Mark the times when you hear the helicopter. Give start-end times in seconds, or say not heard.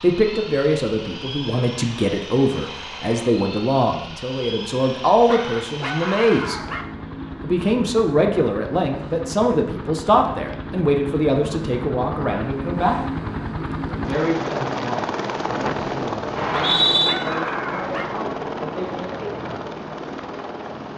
0.0-20.9.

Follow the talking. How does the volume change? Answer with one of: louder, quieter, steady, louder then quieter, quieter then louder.
quieter.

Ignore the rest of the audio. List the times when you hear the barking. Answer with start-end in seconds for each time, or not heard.
5.2-6.8, 16.5-18.1.